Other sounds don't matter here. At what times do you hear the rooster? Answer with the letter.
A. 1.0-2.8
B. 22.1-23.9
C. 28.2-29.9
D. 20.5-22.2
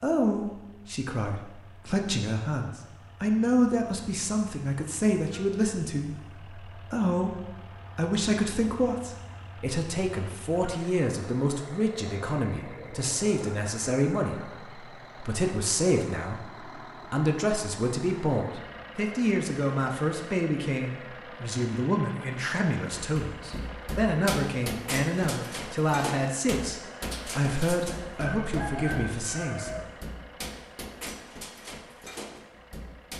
C.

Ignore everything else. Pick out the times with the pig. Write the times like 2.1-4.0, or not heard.
not heard.